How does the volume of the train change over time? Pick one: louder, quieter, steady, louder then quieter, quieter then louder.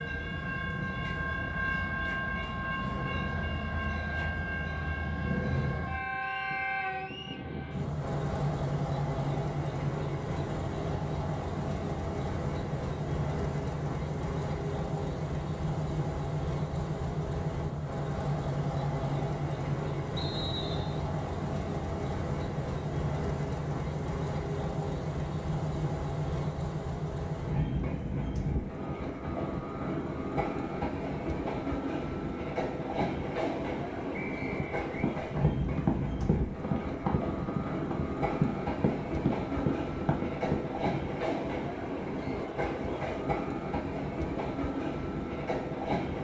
steady.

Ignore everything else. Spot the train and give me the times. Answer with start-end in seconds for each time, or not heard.
0.0-46.1.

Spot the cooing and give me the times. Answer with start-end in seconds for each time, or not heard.
not heard.